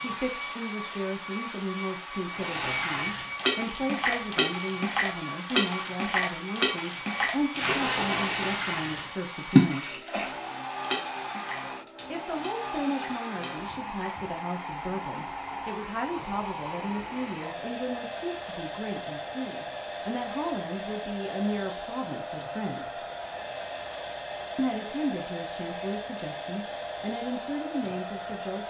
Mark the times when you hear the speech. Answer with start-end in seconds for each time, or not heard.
0.0-10.1, 12.1-23.1, 24.6-28.6.